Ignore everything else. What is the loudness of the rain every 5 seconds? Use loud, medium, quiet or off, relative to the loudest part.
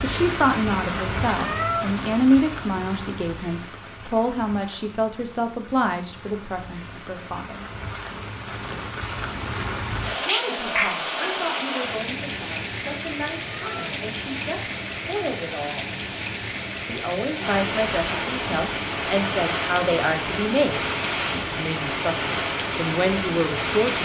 medium, medium, loud, loud, loud.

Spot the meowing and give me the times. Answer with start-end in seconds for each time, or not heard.
1.4-1.9, 13.5-13.9.